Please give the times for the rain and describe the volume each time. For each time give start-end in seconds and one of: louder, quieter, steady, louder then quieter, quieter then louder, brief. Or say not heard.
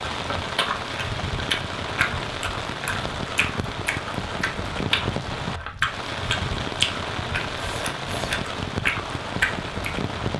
0.0-10.3 steady.